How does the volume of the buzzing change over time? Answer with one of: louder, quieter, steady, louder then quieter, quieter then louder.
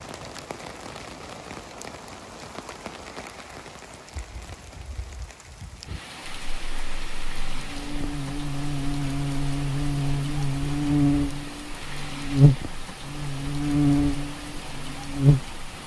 louder.